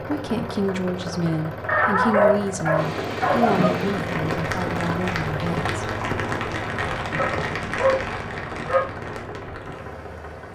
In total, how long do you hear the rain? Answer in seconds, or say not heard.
8 s.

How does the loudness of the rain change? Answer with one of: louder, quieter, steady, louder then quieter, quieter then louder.
quieter.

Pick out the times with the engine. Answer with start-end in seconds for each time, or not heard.
0.0-10.5.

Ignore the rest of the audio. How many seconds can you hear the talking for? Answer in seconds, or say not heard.
6 s.